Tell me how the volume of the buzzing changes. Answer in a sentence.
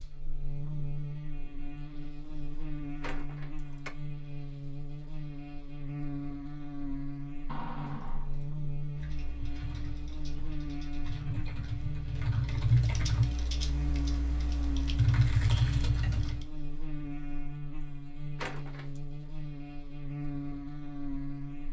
The volume of the buzzing stays about the same.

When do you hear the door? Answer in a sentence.
The door can be heard from 3.0 to 3.9 s, from 7.5 to 8.5 s and from 18.4 to 19.0 s.